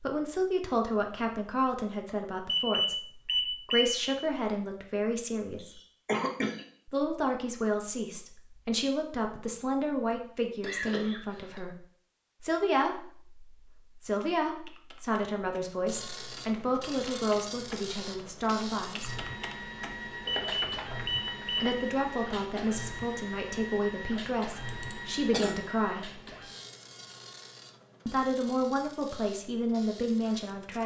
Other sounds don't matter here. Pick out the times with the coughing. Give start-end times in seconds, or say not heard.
5.5-6.7, 10.6-11.6, 24.6-25.6.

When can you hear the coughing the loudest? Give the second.
6 s.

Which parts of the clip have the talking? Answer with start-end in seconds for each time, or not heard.
0.0-5.8, 6.8-11.8, 12.4-19.1, 21.6-26.2, 28.1-30.8.